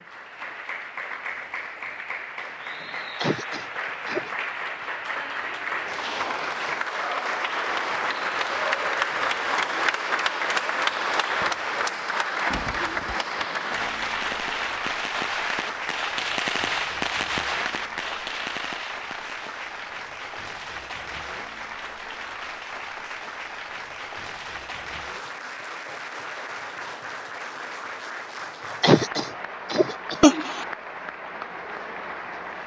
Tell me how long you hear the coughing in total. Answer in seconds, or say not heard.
3 s.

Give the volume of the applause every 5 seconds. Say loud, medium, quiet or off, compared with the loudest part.
medium, loud, loud, medium, medium, medium, medium.